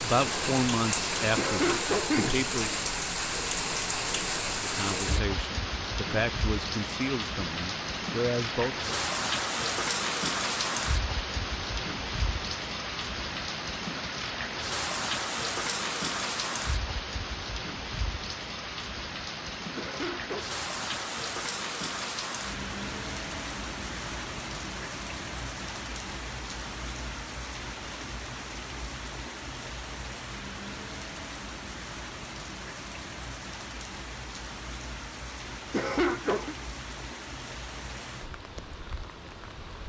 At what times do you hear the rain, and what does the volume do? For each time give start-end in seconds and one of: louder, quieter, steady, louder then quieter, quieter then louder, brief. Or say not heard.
0.0-39.8 quieter.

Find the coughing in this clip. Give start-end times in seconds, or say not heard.
1.4-2.5, 19.8-20.4, 35.7-36.5.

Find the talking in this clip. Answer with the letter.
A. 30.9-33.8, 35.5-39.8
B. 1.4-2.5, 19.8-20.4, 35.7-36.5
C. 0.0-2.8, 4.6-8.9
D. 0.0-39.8
C.